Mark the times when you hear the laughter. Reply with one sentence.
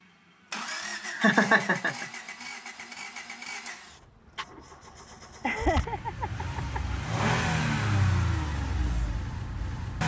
You can hear the laughter from 1.1 to 2.0 s and from 5.4 to 7.3 s.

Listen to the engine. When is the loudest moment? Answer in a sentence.
The loudest moment of the engine is at 8 seconds.